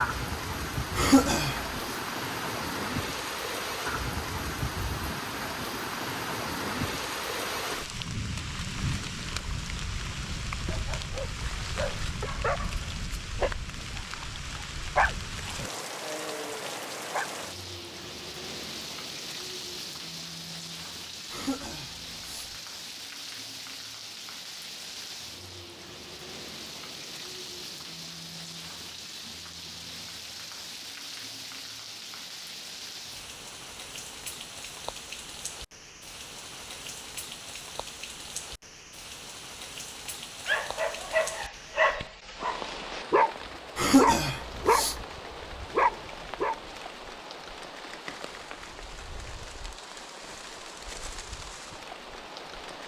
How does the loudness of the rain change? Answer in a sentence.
The volume of the rain goes down.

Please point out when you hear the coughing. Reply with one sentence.
You can hear the coughing from 0.9 to 1.8 s, from 21.3 to 22.6 s and from 43.8 to 45.0 s.